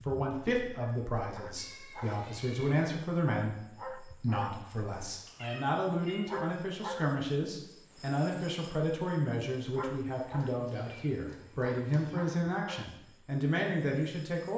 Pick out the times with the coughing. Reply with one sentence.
The coughing can't be heard in this clip.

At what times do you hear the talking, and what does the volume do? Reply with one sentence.
The talking can be heard from 0.0 to 14.5 s, at a steady volume.